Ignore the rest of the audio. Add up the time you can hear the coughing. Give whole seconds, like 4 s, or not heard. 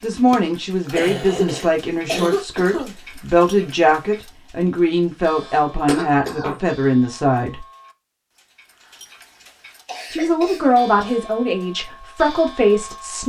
5 s.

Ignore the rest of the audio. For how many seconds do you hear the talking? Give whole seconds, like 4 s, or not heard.
11 s.